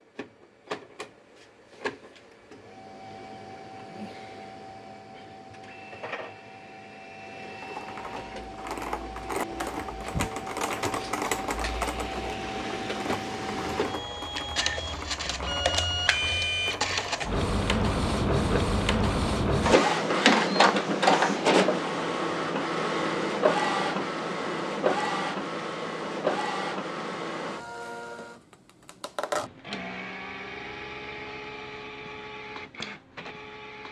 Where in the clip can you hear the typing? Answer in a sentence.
You can hear the typing from 7.6 to 17.4 s.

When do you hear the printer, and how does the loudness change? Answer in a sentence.
You can hear the printer from 0.0 to 33.8 s, getting louder then quieter.